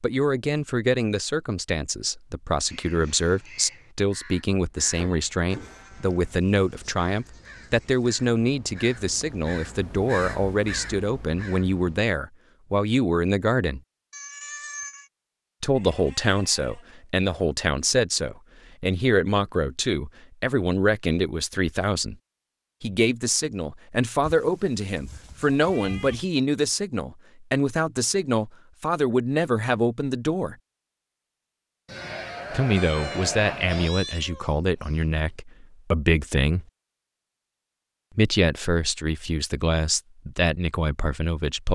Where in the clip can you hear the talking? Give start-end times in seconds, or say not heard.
0.0-13.8, 15.6-22.1, 22.8-30.6, 32.5-36.6, 38.1-41.7.